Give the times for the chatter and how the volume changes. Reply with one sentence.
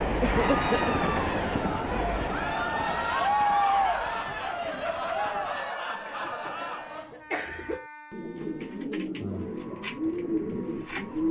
You can hear the chatter from 0.1 to 7.2 s, getting louder then quieter.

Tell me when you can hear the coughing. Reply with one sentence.
The coughing can be heard from 0.2 to 1.0 s and from 6.0 to 7.8 s.